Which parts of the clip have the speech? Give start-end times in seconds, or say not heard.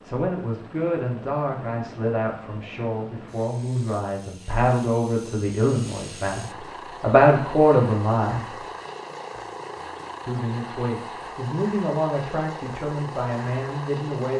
0.0-8.4, 10.2-14.3.